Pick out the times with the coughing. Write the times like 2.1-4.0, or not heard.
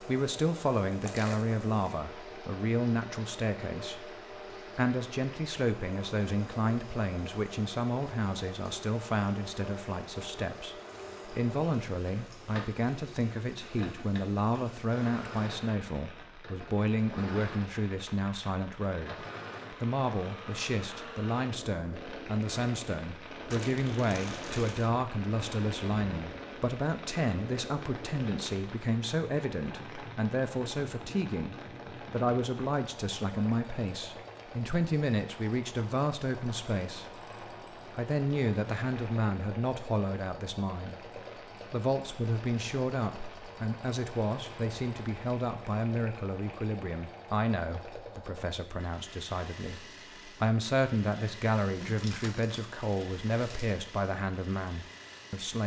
not heard.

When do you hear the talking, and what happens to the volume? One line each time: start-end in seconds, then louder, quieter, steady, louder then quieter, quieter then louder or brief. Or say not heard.
0.0-55.6 steady.